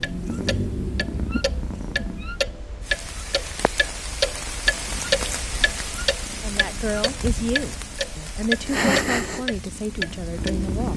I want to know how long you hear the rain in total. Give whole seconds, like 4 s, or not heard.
8 s.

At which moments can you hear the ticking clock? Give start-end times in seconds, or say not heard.
0.0-10.9.